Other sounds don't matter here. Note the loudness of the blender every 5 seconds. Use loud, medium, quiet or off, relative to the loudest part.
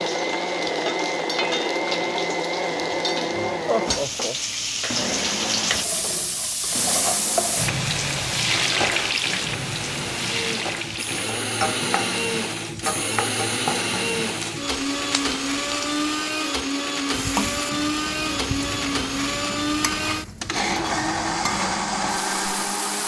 loud, medium, loud, loud, loud.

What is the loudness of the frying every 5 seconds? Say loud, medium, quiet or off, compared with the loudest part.
medium, loud, medium, medium, medium.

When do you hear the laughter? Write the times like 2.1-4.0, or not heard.
3.6-4.3.